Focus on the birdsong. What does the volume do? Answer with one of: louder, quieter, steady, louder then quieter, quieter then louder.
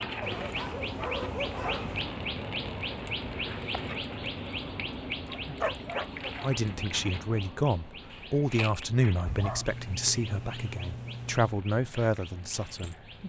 quieter.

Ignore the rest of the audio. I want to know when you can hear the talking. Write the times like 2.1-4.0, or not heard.
6.4-13.1.